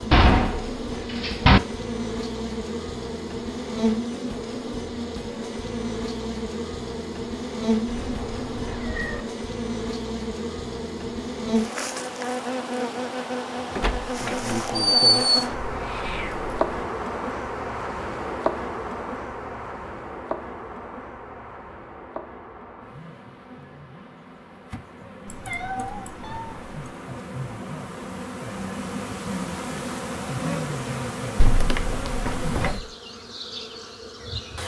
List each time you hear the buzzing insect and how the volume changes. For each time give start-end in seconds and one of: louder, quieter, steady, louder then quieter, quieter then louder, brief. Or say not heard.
0.0-34.6 quieter then louder.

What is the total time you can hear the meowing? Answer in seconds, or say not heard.
4 s.